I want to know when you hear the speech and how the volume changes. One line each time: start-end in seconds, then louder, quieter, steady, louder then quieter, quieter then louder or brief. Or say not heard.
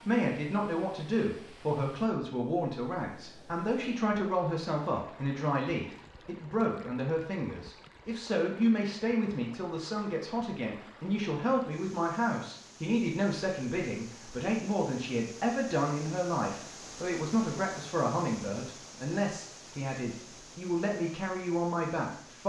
0.0-22.4 steady.